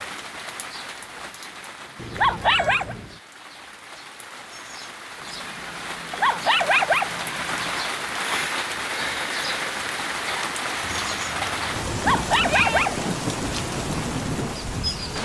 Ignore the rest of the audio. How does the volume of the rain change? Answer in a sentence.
The loudness of the rain goes up.